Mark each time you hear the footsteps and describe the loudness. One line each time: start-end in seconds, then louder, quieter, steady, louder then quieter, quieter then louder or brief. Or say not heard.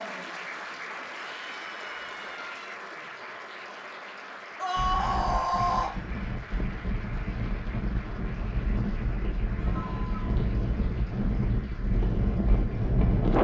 not heard.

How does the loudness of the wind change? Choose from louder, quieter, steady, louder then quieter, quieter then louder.
louder.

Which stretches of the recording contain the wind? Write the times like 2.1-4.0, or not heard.
4.8-13.3.